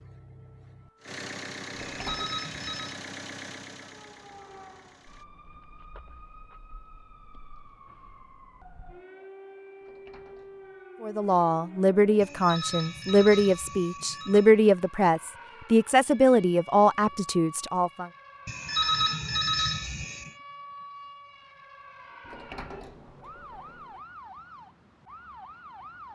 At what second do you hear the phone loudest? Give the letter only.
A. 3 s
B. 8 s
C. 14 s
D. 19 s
D.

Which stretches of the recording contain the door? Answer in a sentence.
The door can be heard from 1.7 to 2.4 s, from 9.8 to 10.8 s and from 22.2 to 24.0 s.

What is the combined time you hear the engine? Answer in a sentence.
You can hear the engine for 5 seconds altogether.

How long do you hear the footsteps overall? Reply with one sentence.
You can't hear the footsteps here.